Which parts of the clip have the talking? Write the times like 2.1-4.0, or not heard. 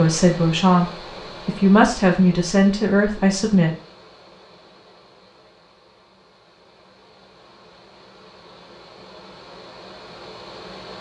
0.0-3.8.